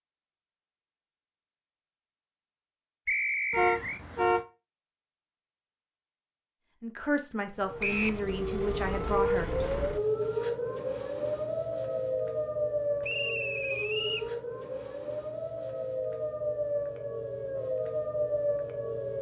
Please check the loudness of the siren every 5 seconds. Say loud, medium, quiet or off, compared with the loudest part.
off, loud, loud, loud.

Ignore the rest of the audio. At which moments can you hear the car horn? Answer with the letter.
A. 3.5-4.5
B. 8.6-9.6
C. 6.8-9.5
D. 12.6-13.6
A.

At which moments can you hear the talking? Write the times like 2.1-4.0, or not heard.
6.8-9.5.